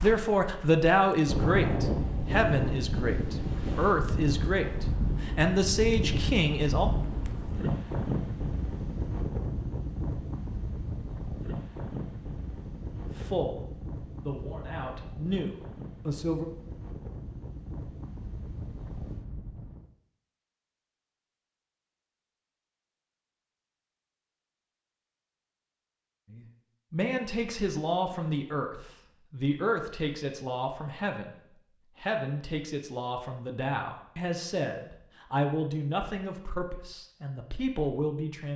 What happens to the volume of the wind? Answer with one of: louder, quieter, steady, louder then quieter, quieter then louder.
quieter.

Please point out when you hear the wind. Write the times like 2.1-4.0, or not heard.
0.0-19.9.